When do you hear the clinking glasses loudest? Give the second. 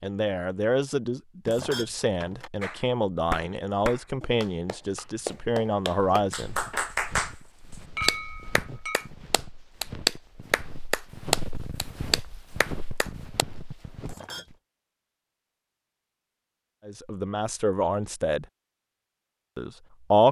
8 s.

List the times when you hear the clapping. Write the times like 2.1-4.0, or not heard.
2.6-7.3, 8.1-13.4.